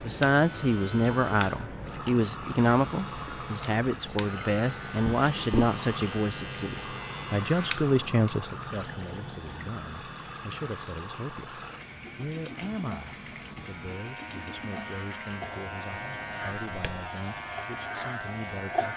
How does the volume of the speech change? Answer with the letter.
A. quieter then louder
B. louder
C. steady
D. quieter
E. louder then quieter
D.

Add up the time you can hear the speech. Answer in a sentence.
You can hear the speech for 19 seconds altogether.